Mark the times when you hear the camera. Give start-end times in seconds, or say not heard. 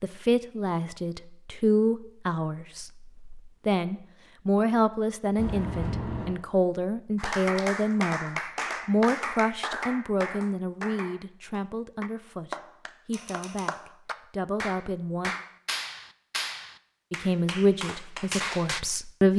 5.3-6.3, 13.1-13.7.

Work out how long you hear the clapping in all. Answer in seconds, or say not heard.
12 s.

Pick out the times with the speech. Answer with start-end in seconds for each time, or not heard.
0.0-15.3, 17.1-19.3.